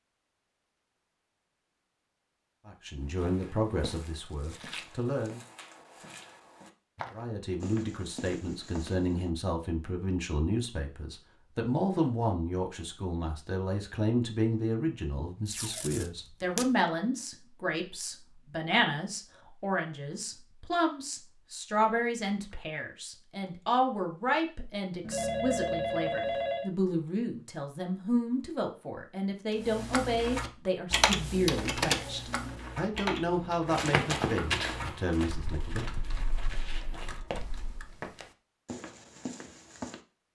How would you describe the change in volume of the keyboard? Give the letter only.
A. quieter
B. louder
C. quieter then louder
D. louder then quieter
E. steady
A.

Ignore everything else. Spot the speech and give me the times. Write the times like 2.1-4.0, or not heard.
2.6-5.4, 7.1-35.9.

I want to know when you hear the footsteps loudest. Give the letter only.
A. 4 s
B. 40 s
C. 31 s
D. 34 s
D.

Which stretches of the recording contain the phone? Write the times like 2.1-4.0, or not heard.
25.0-26.7.